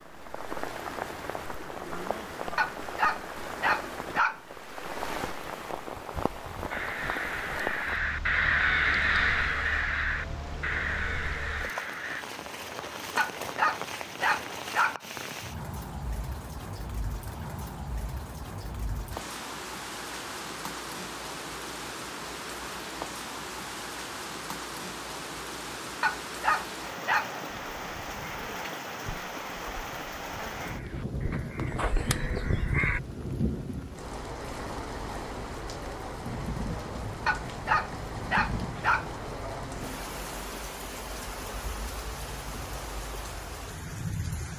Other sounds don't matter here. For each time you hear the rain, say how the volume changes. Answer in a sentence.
You can hear the rain from 0.0 to 44.5 s, at a steady volume.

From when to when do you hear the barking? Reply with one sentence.
You can hear the barking from 2.5 to 4.4 s, from 13.2 to 15.0 s, from 26.0 to 27.4 s and from 37.2 to 39.1 s.